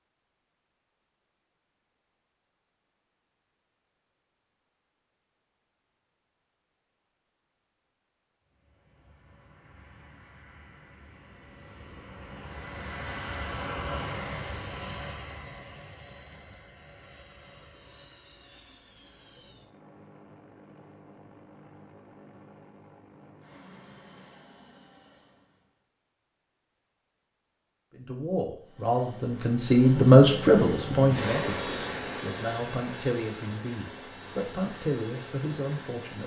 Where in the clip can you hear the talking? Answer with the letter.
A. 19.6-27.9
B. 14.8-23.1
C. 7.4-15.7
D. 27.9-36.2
D.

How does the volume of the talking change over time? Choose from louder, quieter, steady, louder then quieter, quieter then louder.
louder then quieter.